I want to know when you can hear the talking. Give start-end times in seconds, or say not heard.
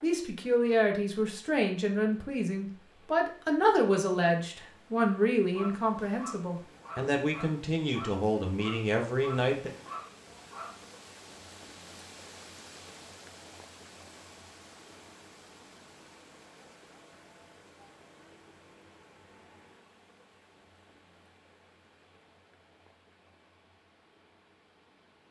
0.0-9.7.